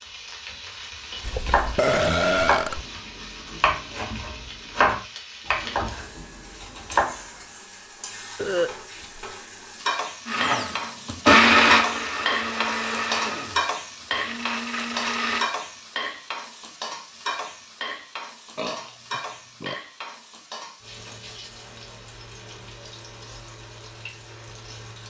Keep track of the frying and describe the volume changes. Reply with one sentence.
The loudness of the frying goes up, then down.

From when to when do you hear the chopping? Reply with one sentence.
The chopping can be heard from 1.1 to 7.2 s.